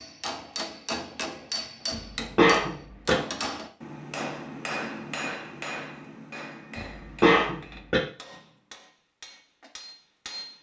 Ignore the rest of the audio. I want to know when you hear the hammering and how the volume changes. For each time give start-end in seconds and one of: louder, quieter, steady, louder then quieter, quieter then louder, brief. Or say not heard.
0.0-10.5 quieter.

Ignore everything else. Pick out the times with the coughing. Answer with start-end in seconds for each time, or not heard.
1.9-3.1, 6.8-8.0.